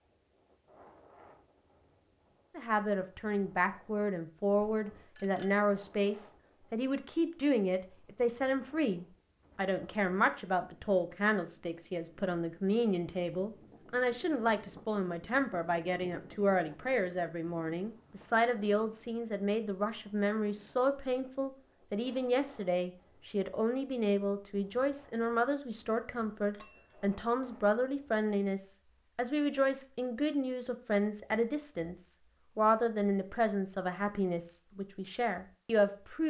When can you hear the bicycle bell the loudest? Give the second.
5 s.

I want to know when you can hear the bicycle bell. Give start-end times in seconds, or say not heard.
4.6-5.5, 26.4-27.1.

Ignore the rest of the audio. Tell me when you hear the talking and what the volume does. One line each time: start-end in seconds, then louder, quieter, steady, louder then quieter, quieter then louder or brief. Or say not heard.
2.5-36.2 steady.